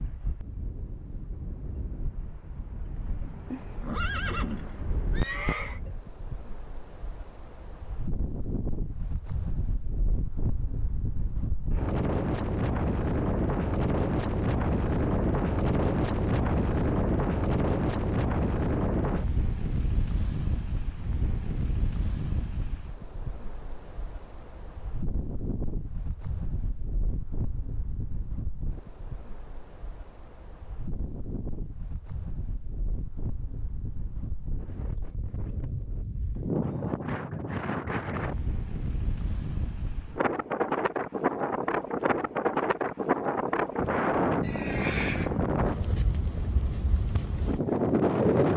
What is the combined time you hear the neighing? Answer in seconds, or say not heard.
3 s.